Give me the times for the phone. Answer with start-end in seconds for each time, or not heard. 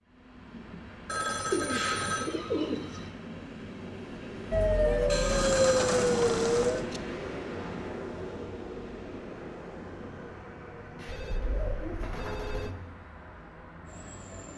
1.1-2.4, 5.1-7.0, 11.1-12.7.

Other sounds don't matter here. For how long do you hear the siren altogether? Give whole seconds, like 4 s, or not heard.
2 s.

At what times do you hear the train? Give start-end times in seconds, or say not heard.
0.0-14.5.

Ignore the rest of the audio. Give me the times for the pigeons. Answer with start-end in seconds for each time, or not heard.
1.5-3.1, 5.2-6.8, 10.9-12.8.